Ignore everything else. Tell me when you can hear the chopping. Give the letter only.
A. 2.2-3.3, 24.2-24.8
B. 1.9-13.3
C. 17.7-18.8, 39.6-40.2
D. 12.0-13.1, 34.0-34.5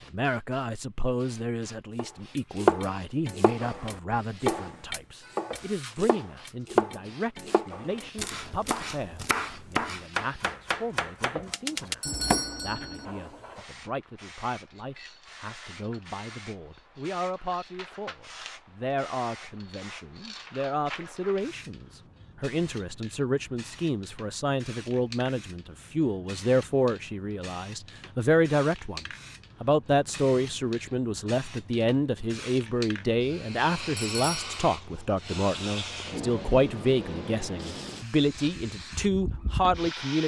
B.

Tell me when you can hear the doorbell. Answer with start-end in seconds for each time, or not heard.
12.0-13.1, 34.0-34.5.